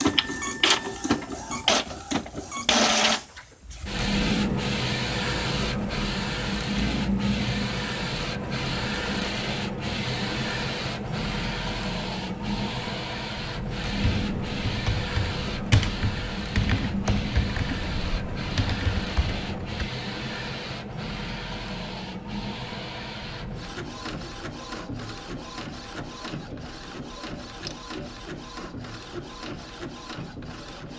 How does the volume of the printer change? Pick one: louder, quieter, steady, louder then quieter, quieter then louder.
quieter.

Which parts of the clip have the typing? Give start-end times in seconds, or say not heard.
13.9-19.9.